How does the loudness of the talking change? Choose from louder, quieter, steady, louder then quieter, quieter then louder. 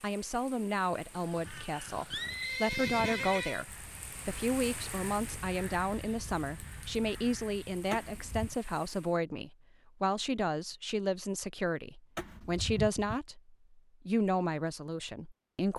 steady.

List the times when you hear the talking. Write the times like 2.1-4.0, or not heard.
0.0-15.7.